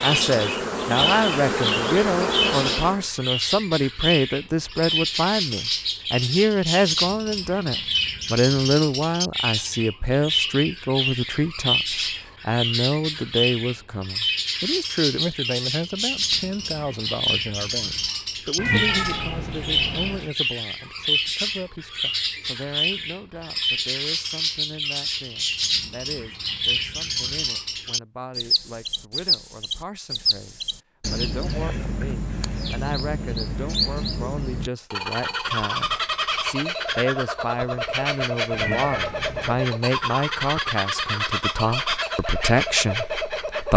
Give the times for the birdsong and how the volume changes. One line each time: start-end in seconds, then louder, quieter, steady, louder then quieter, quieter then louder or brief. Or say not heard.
0.0-43.7 steady.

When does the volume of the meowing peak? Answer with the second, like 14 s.
19 s.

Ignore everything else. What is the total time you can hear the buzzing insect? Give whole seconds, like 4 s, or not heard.
3 s.